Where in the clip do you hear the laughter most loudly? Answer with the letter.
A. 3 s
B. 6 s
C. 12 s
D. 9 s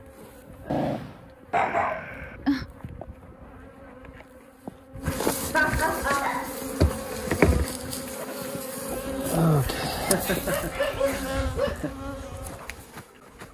B.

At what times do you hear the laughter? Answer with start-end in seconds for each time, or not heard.
1.6-2.4, 5.5-6.4, 9.6-11.9.